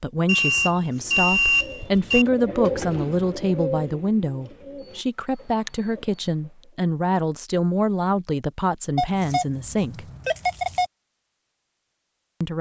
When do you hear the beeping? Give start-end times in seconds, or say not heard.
0.2-2.2, 8.9-10.9.